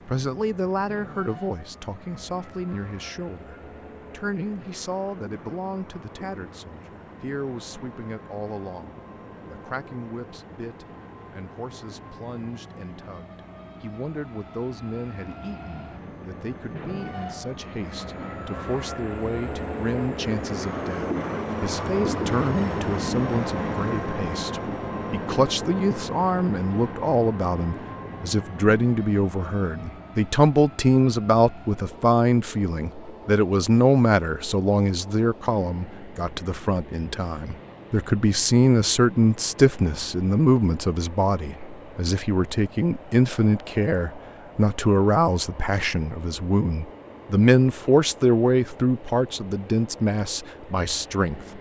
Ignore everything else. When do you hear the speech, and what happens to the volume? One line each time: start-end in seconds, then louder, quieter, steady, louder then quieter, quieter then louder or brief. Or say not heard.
0.1-51.4 louder.